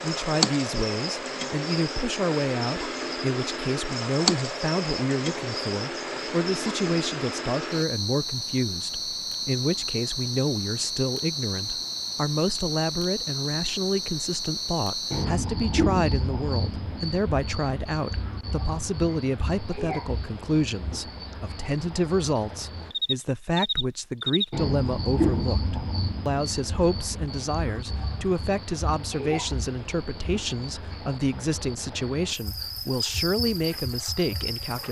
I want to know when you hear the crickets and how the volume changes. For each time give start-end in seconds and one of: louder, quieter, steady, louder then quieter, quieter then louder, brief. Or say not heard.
0.0-34.8 quieter.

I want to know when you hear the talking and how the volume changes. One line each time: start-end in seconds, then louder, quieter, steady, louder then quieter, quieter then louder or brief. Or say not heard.
0.0-34.8 steady.